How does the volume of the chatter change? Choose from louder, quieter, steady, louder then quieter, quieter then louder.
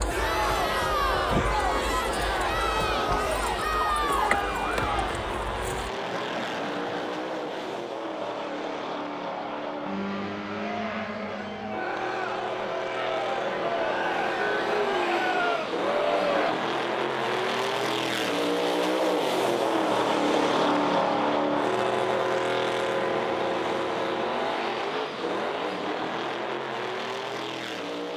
quieter then louder.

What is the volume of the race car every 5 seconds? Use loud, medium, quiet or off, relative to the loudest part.
medium, medium, medium, loud, loud, medium.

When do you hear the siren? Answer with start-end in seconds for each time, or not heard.
0.0-5.9.